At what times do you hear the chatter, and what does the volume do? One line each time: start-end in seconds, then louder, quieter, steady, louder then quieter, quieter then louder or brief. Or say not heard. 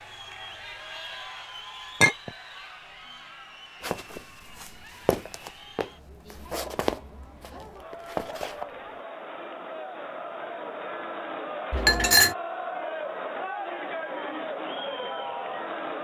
0.0-15.9 quieter then louder.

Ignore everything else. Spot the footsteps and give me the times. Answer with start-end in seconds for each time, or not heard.
3.8-8.7.